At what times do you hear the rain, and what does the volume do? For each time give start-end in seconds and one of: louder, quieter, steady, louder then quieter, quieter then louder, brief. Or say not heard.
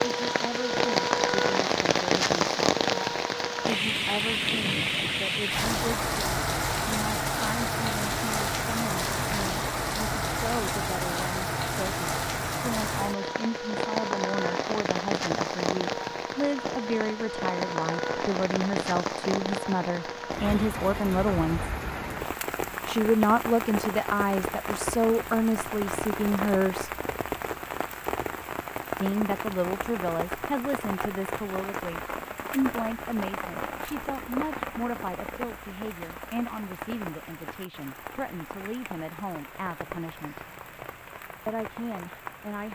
0.0-42.7 quieter.